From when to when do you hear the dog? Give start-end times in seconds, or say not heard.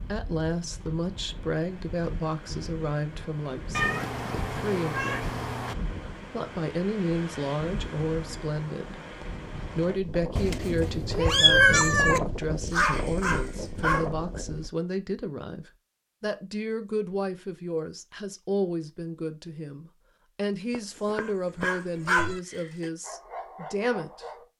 12.7-14.1, 21.1-24.4.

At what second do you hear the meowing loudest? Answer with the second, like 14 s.
12 s.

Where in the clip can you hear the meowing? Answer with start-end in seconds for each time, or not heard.
3.7-5.8, 10.3-12.2, 20.7-22.4.